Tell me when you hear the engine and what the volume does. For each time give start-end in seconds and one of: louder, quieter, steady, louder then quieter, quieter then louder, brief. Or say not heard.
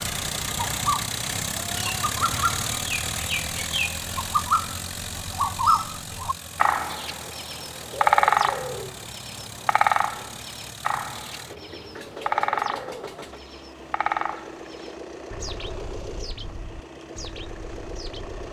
0.0-18.4 quieter.